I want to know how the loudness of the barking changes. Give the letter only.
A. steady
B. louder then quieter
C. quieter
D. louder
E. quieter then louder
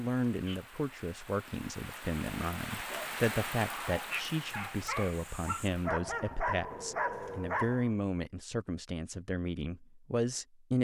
D.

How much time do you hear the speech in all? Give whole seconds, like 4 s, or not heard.
11 s.